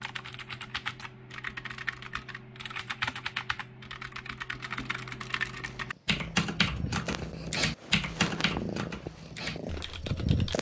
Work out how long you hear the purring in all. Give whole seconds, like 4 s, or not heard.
5 s.